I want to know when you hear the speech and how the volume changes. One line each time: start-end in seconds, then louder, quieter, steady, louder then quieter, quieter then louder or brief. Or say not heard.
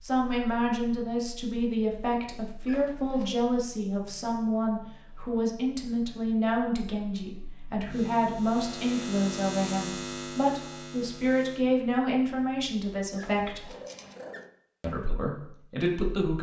0.0-13.7 steady
14.8-16.3 brief.